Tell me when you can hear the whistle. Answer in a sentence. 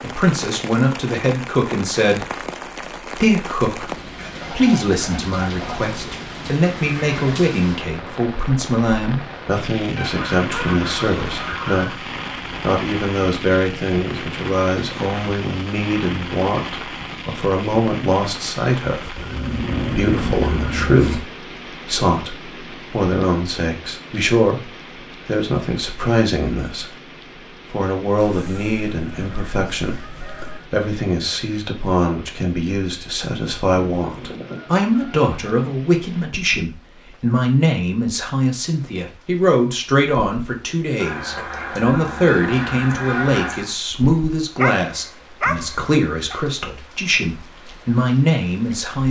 The whistle can't be heard in this clip.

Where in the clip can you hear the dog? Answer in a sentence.
You can hear the dog from 44.5 to 46.4 s.